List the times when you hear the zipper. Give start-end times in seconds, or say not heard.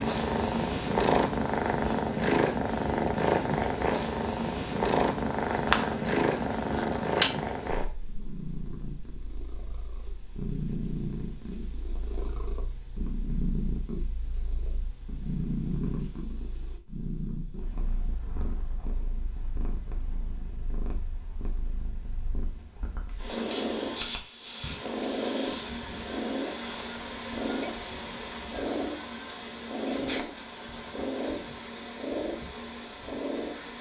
5.4-7.3.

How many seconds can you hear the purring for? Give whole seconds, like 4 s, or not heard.
34 s.